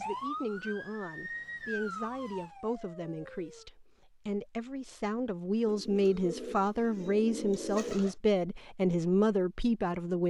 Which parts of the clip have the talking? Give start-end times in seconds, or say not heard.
0.0-10.2.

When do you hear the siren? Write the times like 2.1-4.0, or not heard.
0.0-3.7.